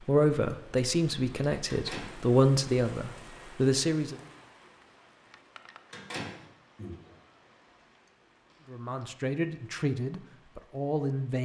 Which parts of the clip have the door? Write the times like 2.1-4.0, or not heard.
1.7-2.1, 5.9-7.0.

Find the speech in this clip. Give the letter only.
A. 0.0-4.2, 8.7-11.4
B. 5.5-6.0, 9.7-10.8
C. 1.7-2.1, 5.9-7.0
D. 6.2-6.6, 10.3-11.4
A.